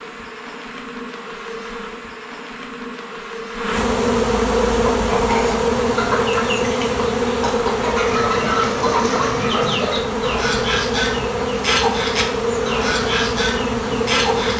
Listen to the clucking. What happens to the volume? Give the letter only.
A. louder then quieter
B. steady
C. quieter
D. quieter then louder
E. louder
B.